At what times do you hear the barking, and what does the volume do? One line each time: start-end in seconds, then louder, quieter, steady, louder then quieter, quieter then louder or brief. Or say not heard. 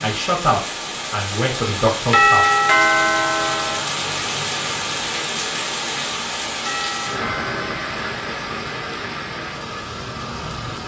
not heard.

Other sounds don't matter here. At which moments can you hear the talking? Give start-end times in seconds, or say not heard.
0.0-2.5.